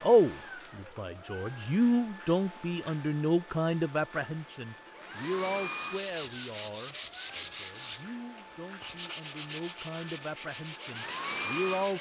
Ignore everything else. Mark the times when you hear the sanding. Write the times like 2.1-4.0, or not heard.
5.7-11.9.